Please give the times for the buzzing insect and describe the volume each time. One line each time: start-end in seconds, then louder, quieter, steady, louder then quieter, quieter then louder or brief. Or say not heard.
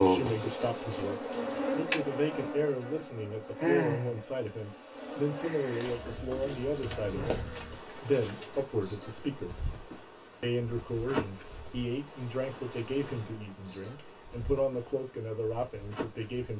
0.0-16.5 quieter.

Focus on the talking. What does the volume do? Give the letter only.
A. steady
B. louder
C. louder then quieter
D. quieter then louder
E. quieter
A.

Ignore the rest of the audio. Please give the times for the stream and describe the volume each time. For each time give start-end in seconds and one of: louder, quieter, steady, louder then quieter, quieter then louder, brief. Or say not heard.
not heard.